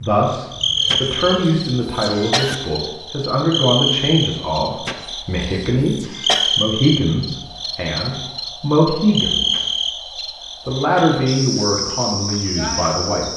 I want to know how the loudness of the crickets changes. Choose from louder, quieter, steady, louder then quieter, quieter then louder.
steady.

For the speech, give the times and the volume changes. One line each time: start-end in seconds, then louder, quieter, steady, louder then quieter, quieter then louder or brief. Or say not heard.
0.0-9.8 steady
10.7-13.3 brief.